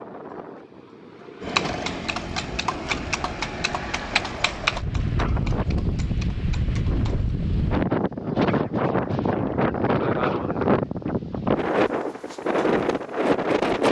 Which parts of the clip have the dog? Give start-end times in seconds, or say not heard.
not heard.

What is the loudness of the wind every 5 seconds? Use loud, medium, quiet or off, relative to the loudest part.
quiet, loud, loud.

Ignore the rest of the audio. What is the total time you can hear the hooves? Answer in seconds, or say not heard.
6 s.